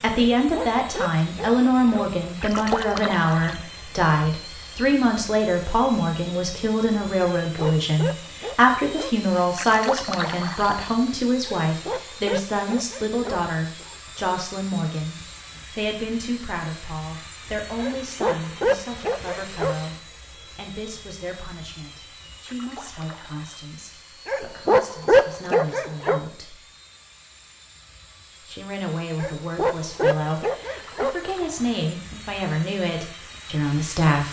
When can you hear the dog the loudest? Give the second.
25 s.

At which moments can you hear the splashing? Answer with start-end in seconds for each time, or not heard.
2.4-3.6, 9.6-10.8, 22.4-23.6, 30.7-31.7.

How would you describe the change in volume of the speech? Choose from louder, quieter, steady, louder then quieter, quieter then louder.
quieter then louder.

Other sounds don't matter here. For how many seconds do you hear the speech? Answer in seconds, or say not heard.
32 s.